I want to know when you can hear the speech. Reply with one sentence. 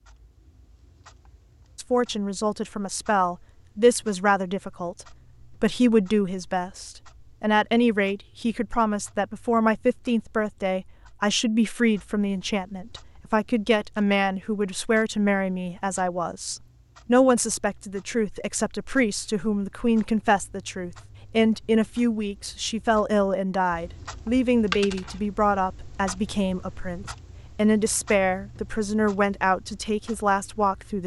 You can hear the speech from 1.8 to 31.0 s.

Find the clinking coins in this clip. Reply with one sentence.
You can hear the clinking coins from 24.7 to 25.2 s.